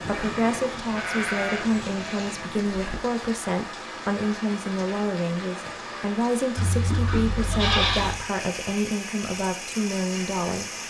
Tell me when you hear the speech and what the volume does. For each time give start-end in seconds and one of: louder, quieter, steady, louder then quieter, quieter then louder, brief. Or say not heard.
0.0-10.8 steady.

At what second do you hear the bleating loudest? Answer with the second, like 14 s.
8 s.